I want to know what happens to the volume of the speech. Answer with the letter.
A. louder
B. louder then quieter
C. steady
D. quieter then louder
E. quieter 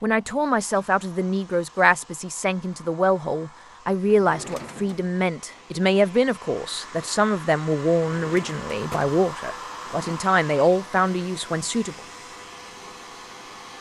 C.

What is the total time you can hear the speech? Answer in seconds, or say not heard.
12 s.